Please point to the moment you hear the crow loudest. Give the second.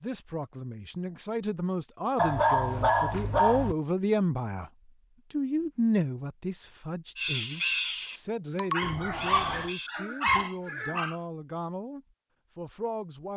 8 s.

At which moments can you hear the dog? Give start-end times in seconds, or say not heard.
2.1-3.8, 8.6-11.2.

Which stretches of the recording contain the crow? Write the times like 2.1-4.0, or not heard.
7.2-10.4.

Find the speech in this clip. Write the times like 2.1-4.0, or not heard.
0.0-4.7, 5.3-13.3.